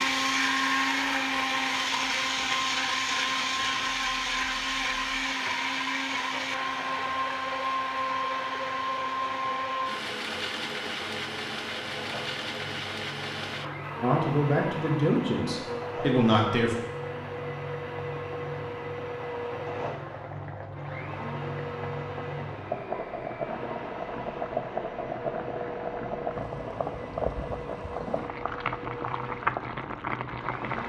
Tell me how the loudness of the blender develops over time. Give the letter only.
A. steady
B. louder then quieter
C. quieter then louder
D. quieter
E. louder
D.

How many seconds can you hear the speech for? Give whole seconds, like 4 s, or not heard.
3 s.